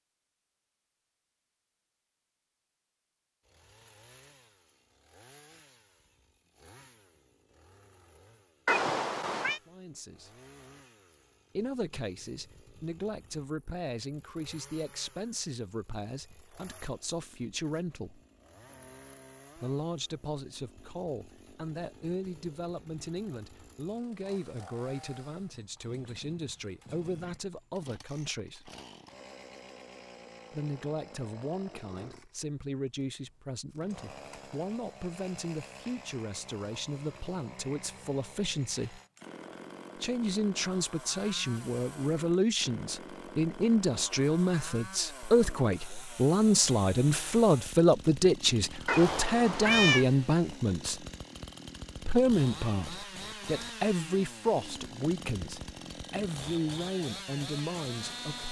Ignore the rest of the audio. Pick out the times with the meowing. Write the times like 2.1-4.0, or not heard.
8.7-9.6, 48.9-50.0.